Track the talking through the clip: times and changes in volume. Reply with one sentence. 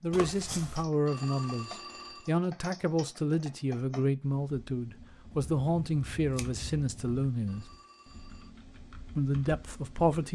The talking can be heard from 0.0 to 7.7 s, at a steady volume; and briefly from 9.2 to 10.3 s.